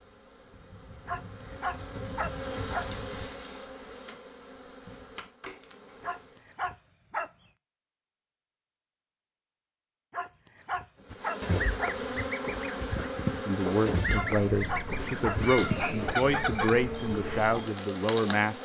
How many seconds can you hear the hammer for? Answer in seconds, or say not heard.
not heard.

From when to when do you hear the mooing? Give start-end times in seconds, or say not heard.
not heard.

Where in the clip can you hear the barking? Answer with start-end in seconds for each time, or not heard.
1.1-3.0, 6.0-7.3, 10.1-12.1, 14.1-16.1.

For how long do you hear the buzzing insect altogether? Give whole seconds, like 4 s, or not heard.
14 s.